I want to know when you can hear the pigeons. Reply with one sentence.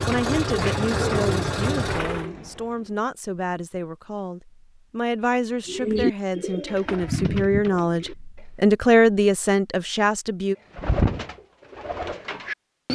The pigeons can be heard from 0.0 to 3.0 s, from 5.7 to 8.4 s and from 10.8 to 12.8 s.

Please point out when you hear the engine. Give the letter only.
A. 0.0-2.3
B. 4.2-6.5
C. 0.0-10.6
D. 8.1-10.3
A.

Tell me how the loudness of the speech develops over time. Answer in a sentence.
The volume of the speech goes up.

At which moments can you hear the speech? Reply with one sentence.
You can hear the speech from 0.0 to 10.6 s.